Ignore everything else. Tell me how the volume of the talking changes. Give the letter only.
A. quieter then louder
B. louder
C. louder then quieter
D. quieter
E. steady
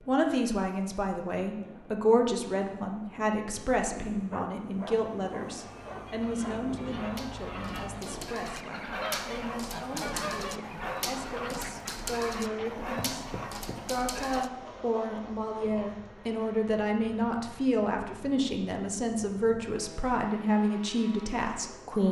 A.